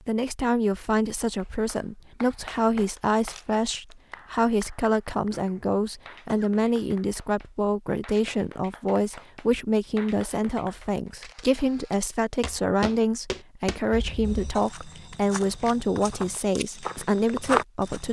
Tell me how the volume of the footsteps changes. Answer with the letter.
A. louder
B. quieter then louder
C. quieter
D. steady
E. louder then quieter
B.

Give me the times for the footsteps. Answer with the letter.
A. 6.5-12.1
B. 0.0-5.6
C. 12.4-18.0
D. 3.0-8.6
C.